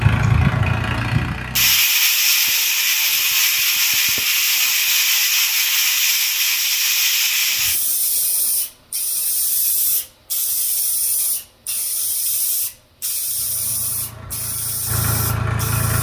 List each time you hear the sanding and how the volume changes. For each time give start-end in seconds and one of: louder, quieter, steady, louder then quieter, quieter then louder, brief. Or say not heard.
not heard.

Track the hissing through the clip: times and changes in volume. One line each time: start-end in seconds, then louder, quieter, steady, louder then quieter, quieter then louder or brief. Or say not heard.
0.0-15.9 quieter.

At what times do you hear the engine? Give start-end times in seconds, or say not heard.
0.0-1.8, 13.2-15.9.